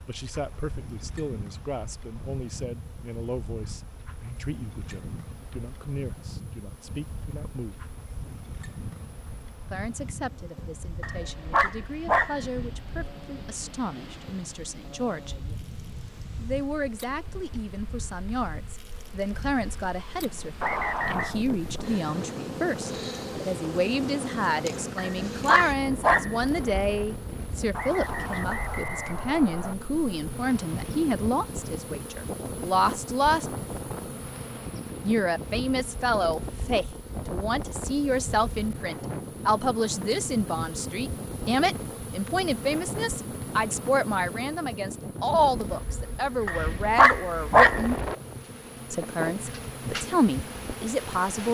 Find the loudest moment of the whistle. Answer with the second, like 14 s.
21 s.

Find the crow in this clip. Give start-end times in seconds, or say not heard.
not heard.